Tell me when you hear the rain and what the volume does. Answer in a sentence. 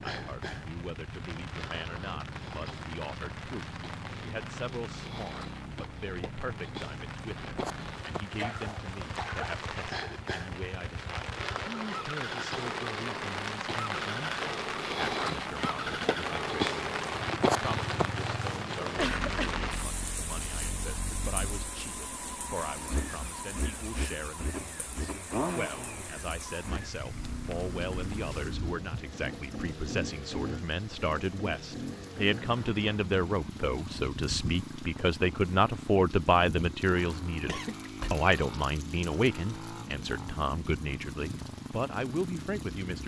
You can hear the rain from 0.0 to 43.0 s, getting louder then quieter.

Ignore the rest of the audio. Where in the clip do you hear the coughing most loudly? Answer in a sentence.
The volume of the coughing peaks at 19 seconds.